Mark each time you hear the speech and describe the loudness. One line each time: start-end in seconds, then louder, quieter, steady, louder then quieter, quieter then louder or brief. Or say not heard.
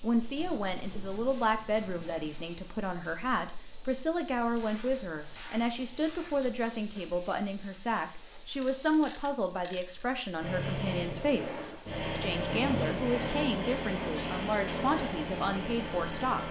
0.0-16.4 steady.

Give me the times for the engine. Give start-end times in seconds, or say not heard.
10.3-16.4.